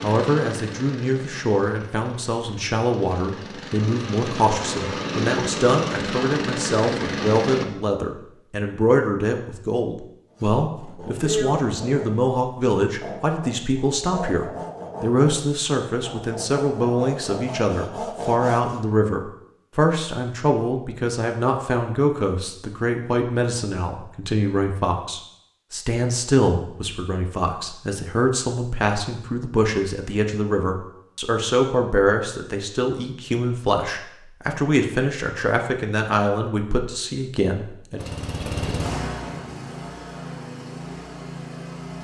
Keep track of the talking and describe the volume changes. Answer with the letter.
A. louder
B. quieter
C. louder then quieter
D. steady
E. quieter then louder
D.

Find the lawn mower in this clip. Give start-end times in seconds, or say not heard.
0.0-7.7, 38.0-41.9.